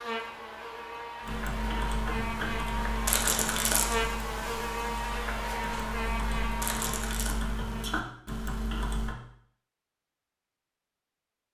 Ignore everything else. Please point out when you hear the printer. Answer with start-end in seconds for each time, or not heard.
not heard.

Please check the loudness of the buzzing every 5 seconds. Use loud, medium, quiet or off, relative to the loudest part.
loud, loud, off.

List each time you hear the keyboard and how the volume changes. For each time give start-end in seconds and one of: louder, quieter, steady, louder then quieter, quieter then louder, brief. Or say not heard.
1.2-9.2 quieter then louder.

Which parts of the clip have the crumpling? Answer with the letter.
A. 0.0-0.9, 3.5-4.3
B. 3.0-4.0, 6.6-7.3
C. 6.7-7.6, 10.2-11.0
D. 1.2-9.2
B.